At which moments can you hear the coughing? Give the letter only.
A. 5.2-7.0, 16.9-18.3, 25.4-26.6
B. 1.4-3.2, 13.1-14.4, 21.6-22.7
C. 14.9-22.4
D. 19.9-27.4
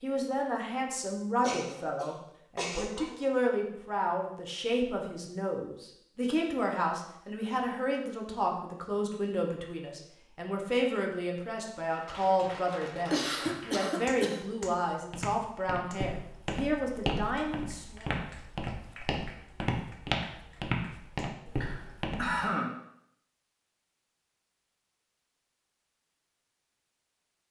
B.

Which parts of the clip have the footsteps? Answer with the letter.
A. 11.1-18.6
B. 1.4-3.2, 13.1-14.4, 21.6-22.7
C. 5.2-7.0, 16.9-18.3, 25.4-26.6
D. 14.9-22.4
D.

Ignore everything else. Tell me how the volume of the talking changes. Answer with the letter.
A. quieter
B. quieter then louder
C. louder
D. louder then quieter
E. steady
E.